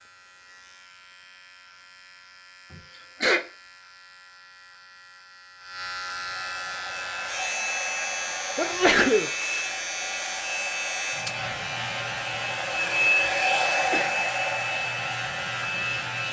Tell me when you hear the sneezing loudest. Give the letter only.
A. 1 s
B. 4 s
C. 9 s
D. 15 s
C.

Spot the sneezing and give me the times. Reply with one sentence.
The sneezing can be heard from 2.7 to 3.5 s, from 8.6 to 9.3 s and from 13.8 to 14.2 s.